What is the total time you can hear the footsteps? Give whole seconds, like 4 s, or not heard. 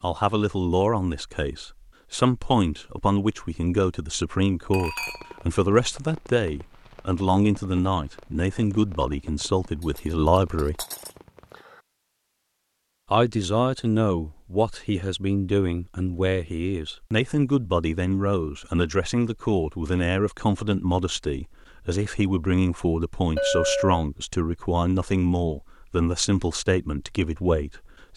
not heard.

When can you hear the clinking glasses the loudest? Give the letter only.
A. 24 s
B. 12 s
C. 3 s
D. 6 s
A.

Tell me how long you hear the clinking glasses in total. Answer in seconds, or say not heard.
3 s.